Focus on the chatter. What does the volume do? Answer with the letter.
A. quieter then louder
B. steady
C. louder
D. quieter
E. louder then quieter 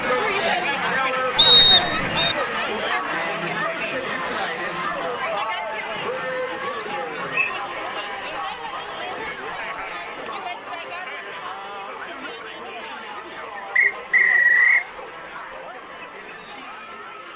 D.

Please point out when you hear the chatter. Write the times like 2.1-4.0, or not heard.
0.0-17.3.